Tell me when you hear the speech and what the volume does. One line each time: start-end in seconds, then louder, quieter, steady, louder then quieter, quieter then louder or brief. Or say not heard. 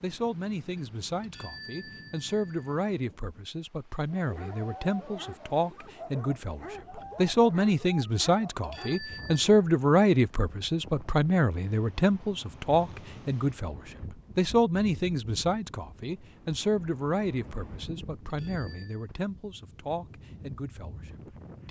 0.0-21.6 louder then quieter.